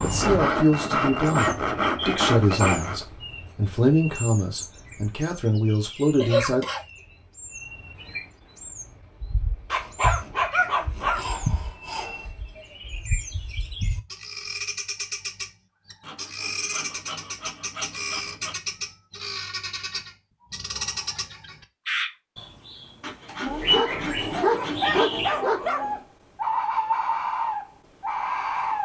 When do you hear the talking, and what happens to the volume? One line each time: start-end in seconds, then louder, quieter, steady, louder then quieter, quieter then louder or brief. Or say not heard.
0.0-6.7 steady.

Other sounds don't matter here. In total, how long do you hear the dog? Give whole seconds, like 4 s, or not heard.
4 s.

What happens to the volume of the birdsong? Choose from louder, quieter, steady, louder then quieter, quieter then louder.
louder.